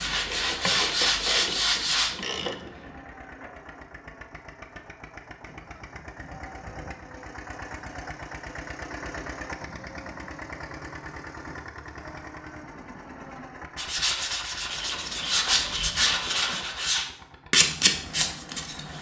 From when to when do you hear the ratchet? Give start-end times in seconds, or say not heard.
0.2-3.0, 14.7-16.6.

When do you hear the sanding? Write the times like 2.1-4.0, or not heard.
0.0-2.1, 13.8-18.9.